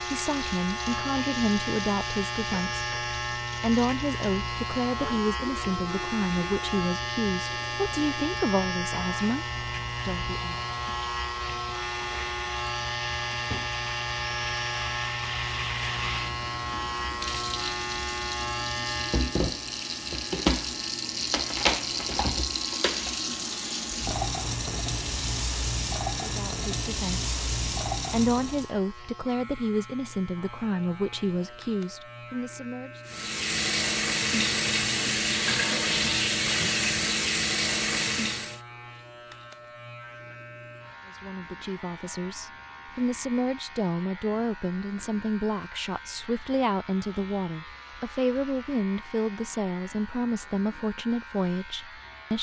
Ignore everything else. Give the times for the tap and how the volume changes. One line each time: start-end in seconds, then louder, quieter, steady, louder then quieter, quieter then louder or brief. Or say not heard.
0.0-28.7 louder
33.0-38.6 steady.